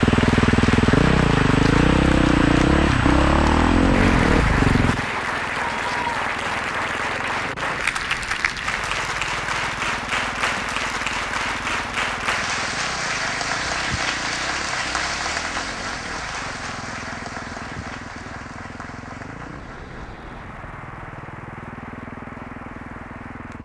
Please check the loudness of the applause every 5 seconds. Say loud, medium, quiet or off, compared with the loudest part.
loud, loud, loud, medium, quiet.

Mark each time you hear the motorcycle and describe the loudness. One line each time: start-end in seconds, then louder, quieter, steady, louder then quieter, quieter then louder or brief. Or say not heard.
0.0-23.5 quieter.